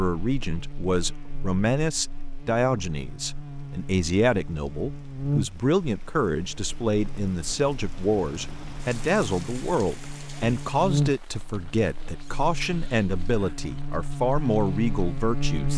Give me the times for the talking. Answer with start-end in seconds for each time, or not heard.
0.0-15.7.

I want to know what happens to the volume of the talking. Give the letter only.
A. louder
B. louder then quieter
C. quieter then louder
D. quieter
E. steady
E.